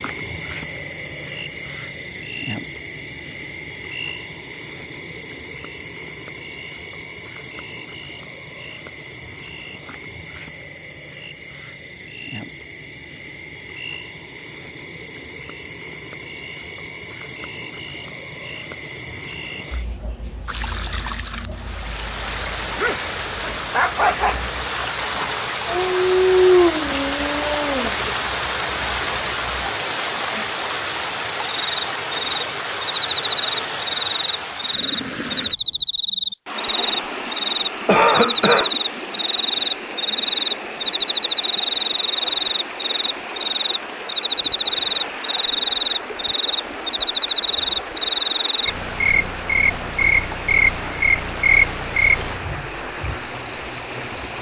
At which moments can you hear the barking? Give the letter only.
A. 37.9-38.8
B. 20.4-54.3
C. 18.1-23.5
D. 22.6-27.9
D.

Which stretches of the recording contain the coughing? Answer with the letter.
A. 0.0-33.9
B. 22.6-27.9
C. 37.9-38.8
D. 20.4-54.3
C.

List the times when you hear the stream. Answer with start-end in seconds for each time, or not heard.
20.4-54.3.